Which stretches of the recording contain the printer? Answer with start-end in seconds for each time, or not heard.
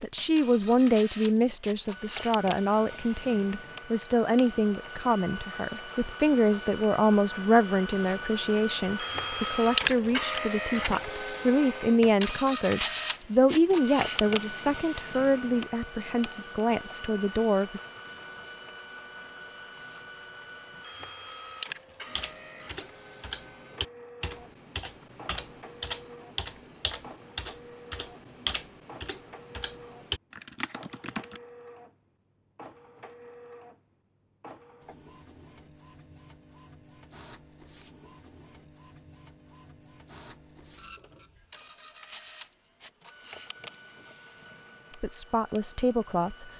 0.0-46.5.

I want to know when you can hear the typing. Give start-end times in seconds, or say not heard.
22.1-31.4.